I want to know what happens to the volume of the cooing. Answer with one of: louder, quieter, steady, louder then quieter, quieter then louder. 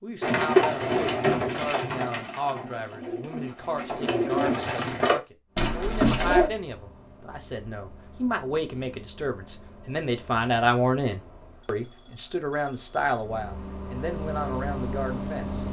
quieter then louder.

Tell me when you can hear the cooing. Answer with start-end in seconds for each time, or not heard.
0.2-6.5.